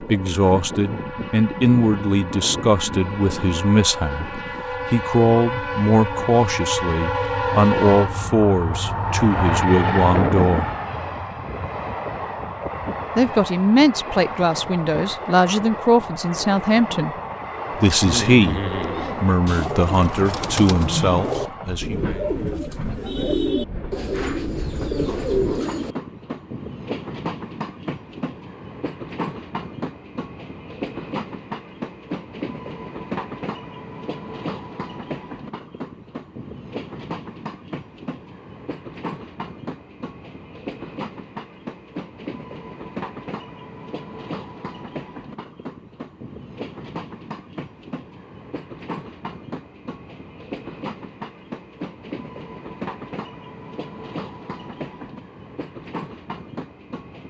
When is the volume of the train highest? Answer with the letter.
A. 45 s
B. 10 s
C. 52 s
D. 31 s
B.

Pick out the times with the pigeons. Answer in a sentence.
The pigeons can be heard from 18.0 to 25.9 s.